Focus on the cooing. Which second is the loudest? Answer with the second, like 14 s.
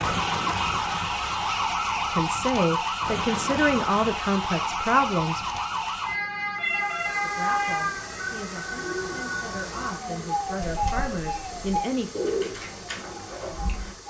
12 s.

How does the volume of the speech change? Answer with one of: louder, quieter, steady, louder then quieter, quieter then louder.
quieter then louder.